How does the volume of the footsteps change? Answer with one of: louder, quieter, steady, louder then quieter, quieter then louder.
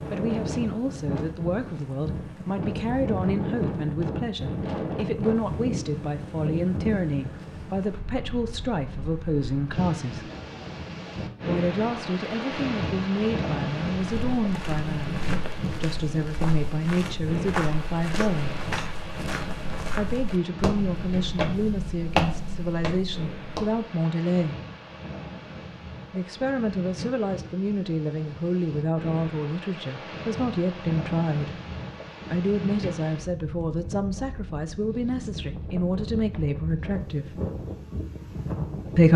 louder.